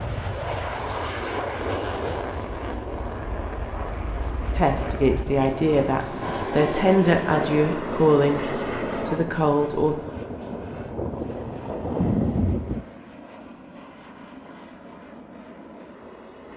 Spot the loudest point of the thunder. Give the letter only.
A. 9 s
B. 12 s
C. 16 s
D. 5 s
B.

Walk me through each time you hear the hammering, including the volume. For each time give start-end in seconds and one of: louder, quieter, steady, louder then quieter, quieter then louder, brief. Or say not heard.
not heard.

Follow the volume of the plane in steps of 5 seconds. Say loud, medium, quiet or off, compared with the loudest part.
loud, loud, quiet, quiet.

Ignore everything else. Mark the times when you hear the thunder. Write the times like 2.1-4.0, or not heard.
8.6-12.8.